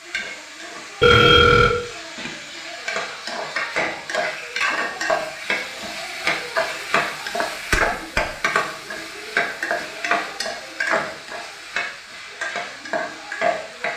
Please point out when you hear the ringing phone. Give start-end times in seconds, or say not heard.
1.0-1.8.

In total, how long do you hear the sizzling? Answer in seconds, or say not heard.
14 s.